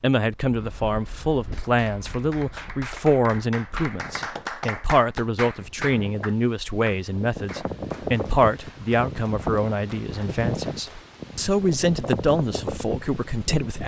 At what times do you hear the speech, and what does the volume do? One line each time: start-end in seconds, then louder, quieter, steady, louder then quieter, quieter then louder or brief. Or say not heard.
0.0-13.8 steady.